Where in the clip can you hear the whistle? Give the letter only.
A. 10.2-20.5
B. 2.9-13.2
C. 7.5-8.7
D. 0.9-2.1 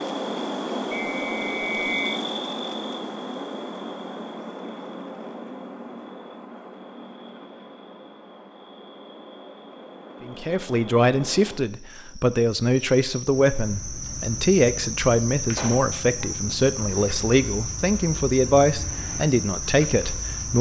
D.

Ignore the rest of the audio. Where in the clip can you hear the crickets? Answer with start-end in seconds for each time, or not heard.
0.0-20.5.